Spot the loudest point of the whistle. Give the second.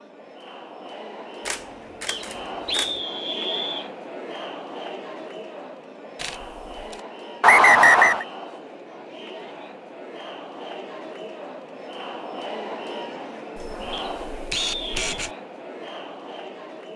8 s.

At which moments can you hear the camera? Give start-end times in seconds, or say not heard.
1.4-3.0, 6.2-7.0, 13.6-15.3.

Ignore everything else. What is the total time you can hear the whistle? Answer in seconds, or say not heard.
4 s.